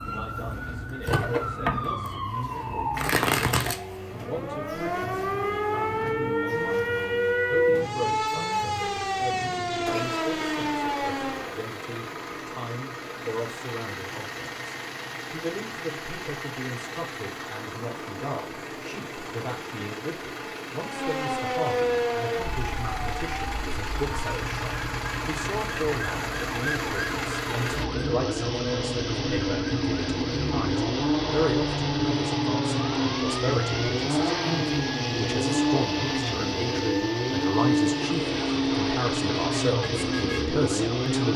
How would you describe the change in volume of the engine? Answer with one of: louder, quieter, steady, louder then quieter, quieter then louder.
louder.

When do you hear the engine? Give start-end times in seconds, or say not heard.
0.1-41.3.